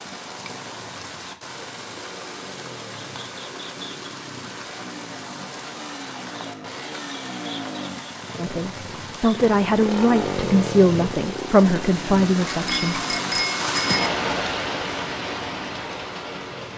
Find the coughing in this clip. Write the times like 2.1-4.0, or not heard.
not heard.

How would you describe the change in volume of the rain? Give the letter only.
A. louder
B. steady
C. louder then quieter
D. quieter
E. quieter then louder
A.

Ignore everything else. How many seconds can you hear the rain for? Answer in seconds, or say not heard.
17 s.